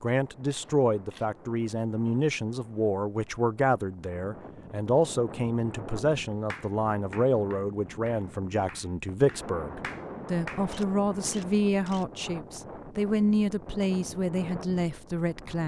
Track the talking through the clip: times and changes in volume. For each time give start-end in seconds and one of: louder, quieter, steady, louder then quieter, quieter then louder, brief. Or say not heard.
0.0-15.6 steady.